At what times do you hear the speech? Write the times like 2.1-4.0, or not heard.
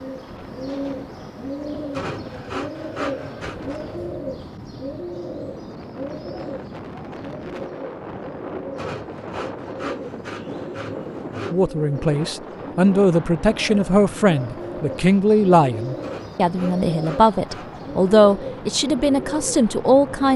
11.5-20.3.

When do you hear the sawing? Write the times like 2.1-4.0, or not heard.
1.9-3.5, 8.8-11.6, 16.0-17.8.